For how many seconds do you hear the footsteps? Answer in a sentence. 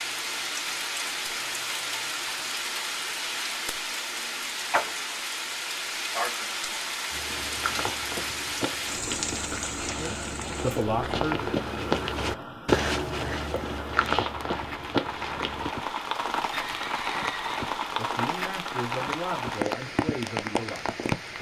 The footsteps can be heard for 9 seconds in total.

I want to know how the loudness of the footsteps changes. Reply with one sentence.
The volume of the footsteps goes up.